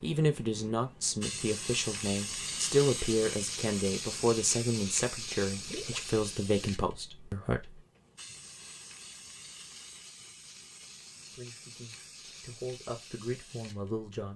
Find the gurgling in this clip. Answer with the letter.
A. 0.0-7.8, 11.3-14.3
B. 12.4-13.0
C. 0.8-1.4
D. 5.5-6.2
D.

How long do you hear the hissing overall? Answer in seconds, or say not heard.
14 s.